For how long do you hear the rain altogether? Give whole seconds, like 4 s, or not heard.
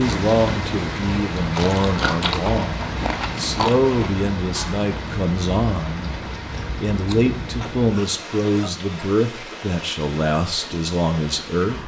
12 s.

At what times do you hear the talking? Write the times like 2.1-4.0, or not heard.
0.0-11.8.